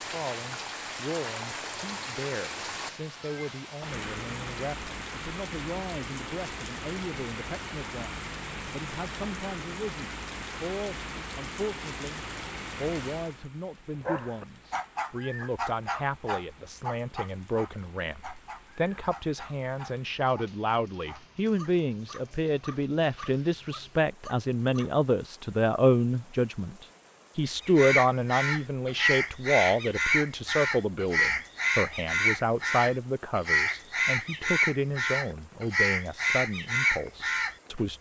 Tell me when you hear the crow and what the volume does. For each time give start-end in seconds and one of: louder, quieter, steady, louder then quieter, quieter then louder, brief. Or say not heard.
27.6-37.5 steady.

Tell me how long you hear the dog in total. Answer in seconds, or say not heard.
11 s.